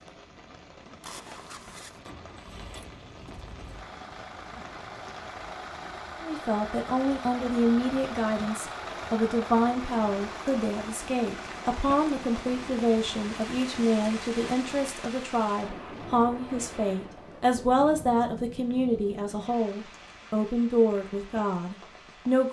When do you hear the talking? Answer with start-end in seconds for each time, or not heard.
6.2-22.4.